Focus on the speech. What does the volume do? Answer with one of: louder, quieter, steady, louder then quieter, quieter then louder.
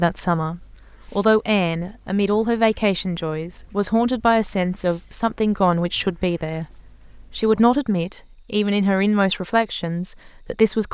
steady.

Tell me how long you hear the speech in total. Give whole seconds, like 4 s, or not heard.
11 s.